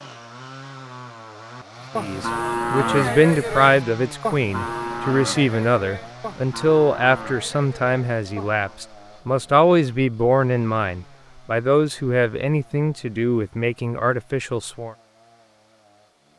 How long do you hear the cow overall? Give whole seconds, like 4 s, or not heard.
7 s.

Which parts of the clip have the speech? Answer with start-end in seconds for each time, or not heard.
1.9-14.9.